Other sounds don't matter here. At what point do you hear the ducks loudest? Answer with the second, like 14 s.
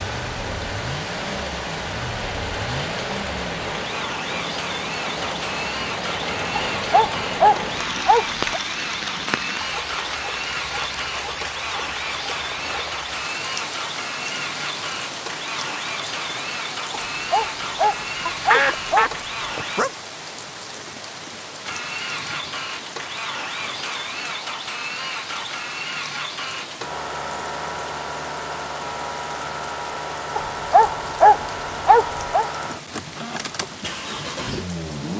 19 s.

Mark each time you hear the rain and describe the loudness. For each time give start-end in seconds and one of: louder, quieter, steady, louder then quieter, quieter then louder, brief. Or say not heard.
0.0-35.1 quieter.